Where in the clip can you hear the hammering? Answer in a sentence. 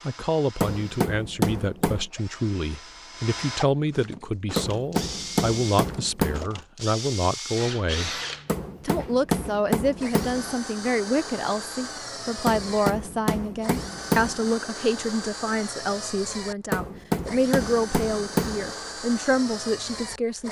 The hammering can be heard from 0.6 to 2.0 s, from 4.5 to 6.5 s, from 8.4 to 10.6 s, from 12.4 to 14.4 s and from 16.7 to 18.8 s.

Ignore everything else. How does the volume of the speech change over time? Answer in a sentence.
The volume of the speech stays about the same.